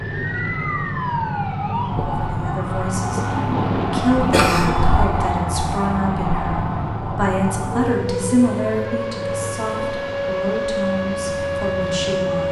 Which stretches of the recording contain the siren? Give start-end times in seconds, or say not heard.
0.0-12.4.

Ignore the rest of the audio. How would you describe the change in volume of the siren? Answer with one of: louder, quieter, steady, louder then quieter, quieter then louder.
steady.